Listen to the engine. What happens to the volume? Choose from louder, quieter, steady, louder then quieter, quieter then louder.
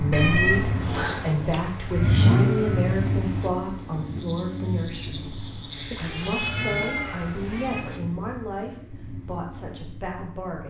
quieter.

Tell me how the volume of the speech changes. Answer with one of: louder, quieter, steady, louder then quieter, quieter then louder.
quieter.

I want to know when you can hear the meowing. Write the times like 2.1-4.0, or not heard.
0.1-1.6, 5.9-7.8.